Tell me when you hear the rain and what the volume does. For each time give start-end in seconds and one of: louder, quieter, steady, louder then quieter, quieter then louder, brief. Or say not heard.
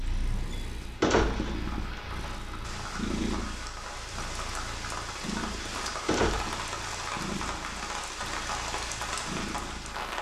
0.0-10.1 louder.